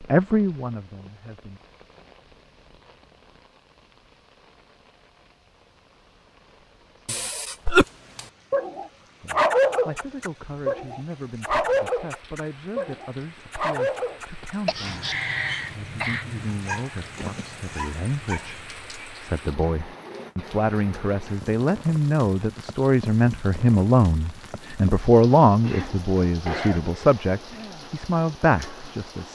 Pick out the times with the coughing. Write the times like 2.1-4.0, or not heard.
7.0-7.8, 14.7-16.2, 25.5-27.1.